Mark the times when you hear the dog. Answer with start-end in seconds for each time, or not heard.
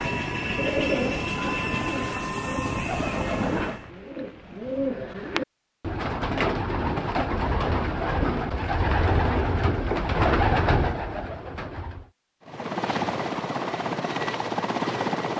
not heard.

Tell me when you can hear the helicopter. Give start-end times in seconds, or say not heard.
0.0-3.9, 12.4-15.3.